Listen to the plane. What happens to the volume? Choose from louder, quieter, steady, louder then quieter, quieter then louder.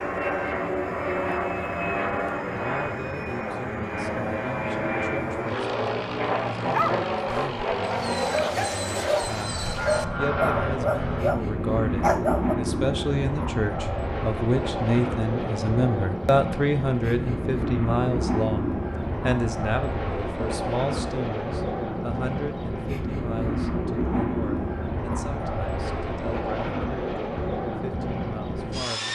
steady.